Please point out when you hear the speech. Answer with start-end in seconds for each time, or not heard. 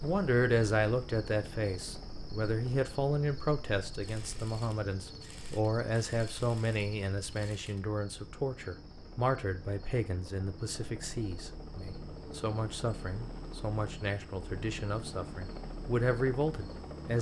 0.0-17.1.